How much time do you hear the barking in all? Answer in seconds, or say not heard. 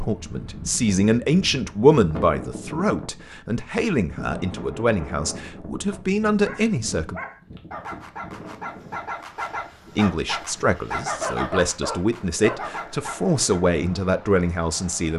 7 s.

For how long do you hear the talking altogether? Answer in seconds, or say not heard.
12 s.